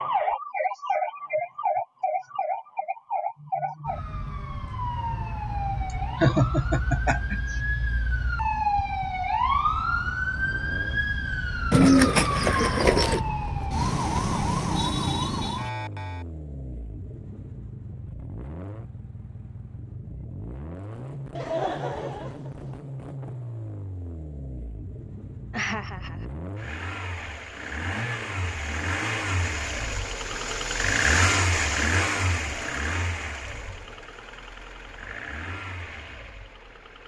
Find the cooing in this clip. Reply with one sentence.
The cooing can be heard from 11.7 to 13.2 s.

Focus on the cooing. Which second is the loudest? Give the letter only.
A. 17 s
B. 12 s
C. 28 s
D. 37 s
B.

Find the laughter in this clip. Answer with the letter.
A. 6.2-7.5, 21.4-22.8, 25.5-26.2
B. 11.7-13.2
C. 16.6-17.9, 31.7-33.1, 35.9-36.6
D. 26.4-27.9
A.